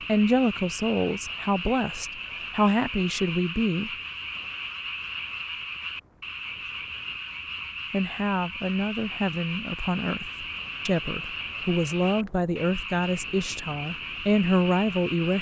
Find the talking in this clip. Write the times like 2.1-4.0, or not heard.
0.1-3.9, 7.9-15.3.